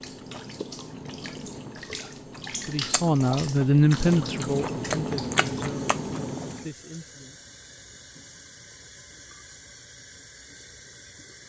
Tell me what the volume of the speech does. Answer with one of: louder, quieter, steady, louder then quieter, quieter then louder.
quieter.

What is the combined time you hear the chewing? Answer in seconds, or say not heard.
7 s.